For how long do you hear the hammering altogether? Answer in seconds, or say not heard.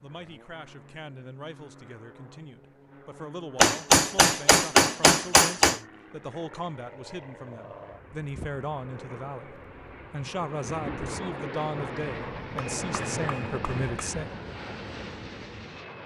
4 s.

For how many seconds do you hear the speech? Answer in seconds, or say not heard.
14 s.